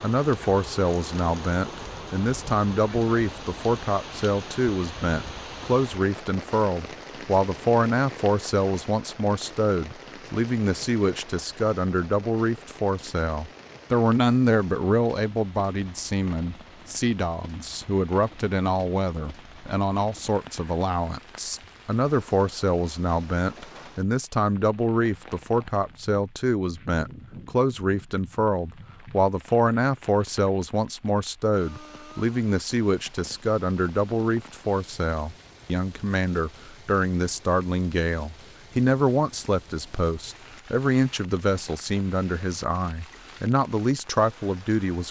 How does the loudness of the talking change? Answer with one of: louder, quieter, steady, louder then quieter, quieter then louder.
steady.